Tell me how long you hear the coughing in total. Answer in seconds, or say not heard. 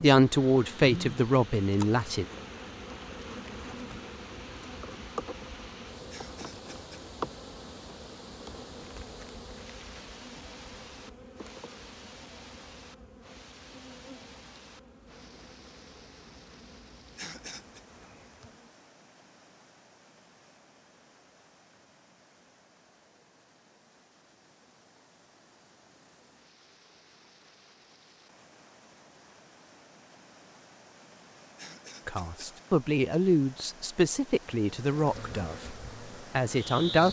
3 s.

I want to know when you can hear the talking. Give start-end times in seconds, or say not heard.
0.0-2.2, 32.0-35.8, 36.4-37.0.